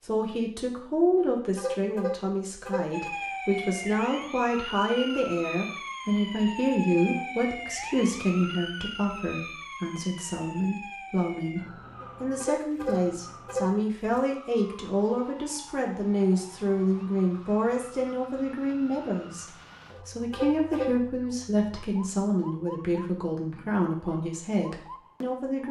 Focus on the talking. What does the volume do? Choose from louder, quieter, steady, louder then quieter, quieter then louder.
steady.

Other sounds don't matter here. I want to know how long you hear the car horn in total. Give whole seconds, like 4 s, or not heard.
5 s.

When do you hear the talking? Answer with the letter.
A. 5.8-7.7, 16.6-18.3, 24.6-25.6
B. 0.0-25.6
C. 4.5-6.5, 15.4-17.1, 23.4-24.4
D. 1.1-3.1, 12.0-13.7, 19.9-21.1
B.